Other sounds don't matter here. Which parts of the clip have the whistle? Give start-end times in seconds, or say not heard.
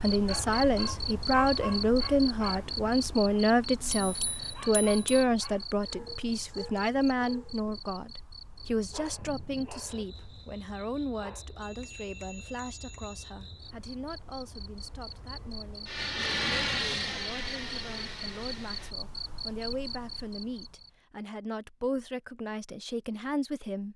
not heard.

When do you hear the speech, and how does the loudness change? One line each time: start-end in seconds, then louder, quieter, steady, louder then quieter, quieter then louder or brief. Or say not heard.
0.0-23.9 quieter then louder.